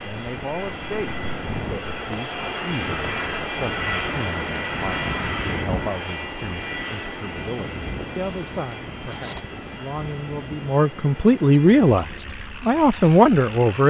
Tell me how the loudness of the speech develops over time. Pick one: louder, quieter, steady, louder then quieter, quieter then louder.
louder.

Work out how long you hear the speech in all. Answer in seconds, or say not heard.
14 s.